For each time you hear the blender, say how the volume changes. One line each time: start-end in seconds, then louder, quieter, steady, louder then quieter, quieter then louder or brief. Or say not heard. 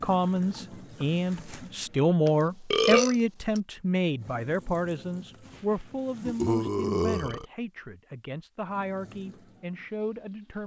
not heard.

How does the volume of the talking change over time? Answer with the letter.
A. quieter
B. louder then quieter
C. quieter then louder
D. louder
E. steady
A.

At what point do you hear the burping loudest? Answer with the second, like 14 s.
3 s.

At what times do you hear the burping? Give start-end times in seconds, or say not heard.
2.2-3.6, 6.2-7.5.